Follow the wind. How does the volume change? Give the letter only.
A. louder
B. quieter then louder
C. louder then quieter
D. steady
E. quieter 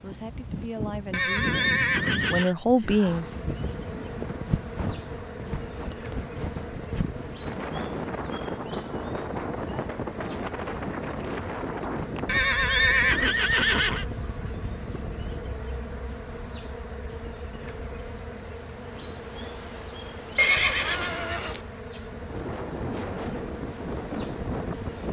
B.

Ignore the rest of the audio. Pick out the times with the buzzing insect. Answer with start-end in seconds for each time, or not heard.
3.0-25.0.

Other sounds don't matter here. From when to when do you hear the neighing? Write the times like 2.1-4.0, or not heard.
1.1-2.5, 12.2-14.1, 20.4-21.6.